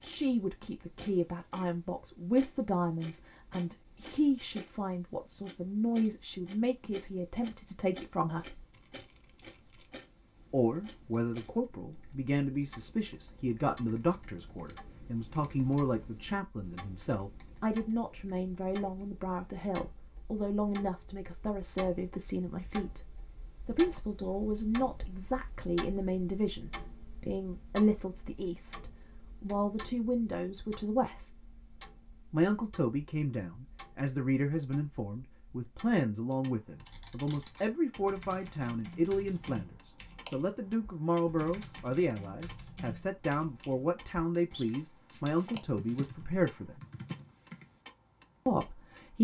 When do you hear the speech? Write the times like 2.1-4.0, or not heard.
0.0-8.7, 10.5-23.0, 23.6-31.3, 32.3-46.8, 48.5-49.2.